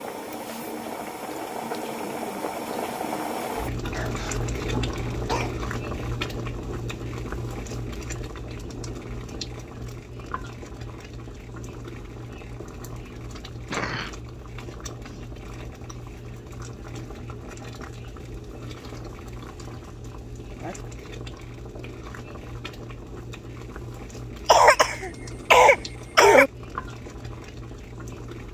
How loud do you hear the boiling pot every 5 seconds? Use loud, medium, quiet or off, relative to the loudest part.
loud, loud, medium, medium, medium, medium.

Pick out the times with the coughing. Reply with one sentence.
The coughing can be heard from 3.9 to 5.5 s, from 13.5 to 14.2 s and from 24.4 to 26.5 s.